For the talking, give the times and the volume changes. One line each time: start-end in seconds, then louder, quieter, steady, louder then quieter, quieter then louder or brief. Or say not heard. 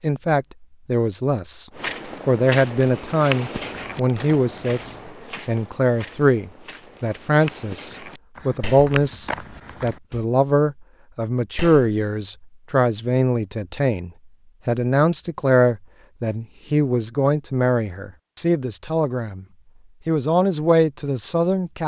0.0-19.4 steady
20.1-21.8 brief.